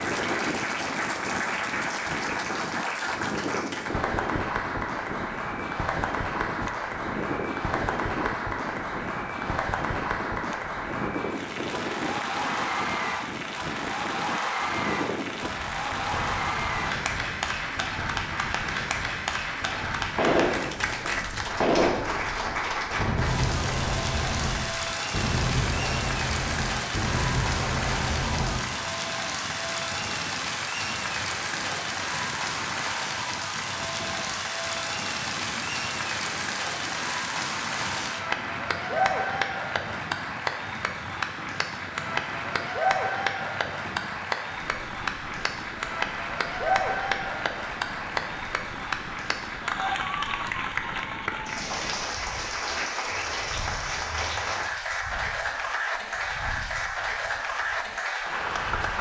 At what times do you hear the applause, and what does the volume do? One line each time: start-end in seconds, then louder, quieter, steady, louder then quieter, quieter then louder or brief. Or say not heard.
0.0-58.9 steady.